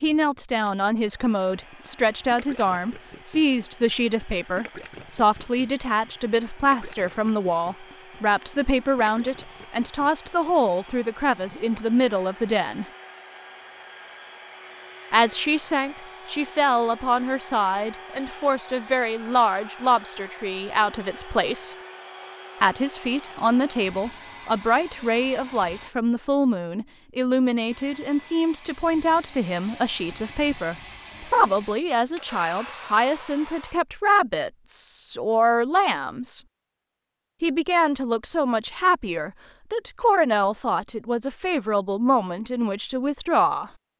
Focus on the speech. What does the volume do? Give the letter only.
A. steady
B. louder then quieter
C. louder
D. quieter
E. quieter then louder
A.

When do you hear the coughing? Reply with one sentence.
You can't hear the coughing here.